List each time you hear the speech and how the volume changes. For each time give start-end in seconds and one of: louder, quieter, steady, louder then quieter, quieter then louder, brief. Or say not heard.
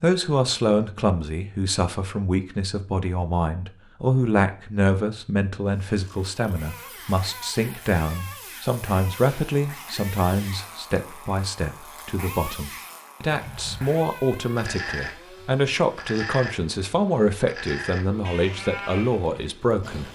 0.0-20.0 steady.